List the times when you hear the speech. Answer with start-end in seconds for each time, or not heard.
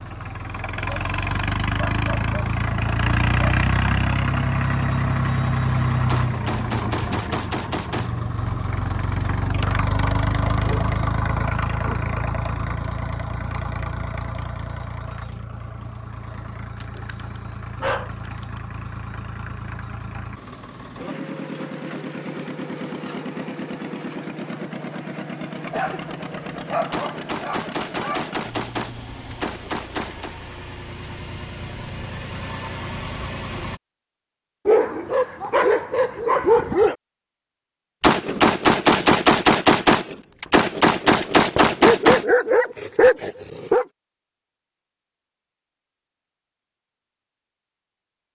not heard.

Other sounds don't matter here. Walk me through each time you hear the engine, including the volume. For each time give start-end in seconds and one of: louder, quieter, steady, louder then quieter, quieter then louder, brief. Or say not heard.
0.0-33.8 quieter.